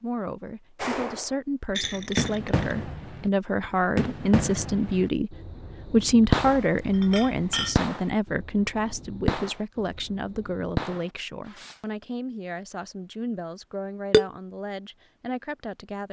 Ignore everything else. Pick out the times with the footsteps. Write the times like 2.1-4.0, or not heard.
not heard.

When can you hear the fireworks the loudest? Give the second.
6 s.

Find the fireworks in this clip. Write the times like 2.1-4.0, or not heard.
0.8-11.8.